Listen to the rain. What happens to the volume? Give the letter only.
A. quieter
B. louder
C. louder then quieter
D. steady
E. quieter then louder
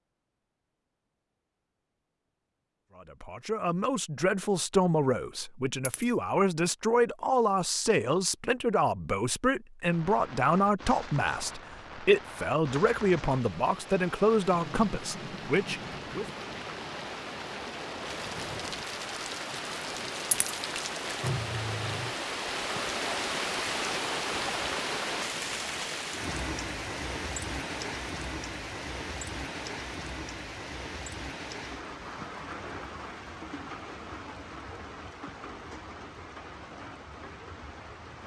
C.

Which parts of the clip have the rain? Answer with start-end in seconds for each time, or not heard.
9.8-38.2.